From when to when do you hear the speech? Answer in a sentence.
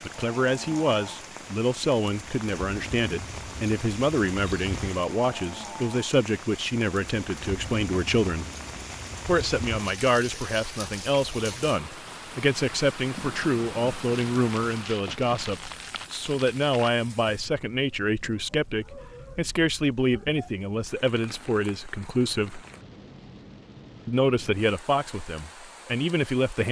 The speech can be heard from 0.0 to 8.5 s, from 9.2 to 22.6 s and from 24.1 to 26.6 s.